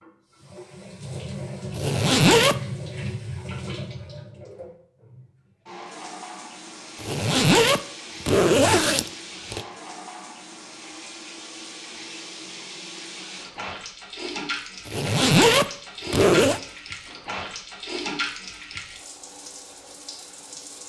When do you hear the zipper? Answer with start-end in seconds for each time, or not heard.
1.8-2.5, 7.0-9.7, 14.8-16.6.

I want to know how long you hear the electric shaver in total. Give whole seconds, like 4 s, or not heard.
not heard.